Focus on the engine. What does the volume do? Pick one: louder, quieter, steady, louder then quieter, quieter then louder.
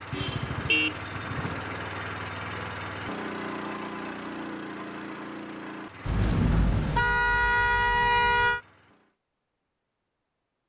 quieter.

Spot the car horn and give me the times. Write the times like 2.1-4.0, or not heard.
0.1-1.6, 6.0-8.6.